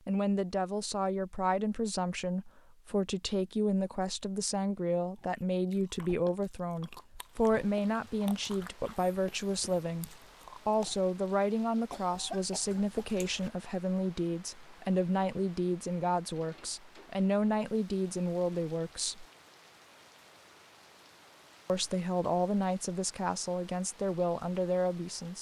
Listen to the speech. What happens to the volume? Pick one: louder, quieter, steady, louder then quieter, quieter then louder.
steady.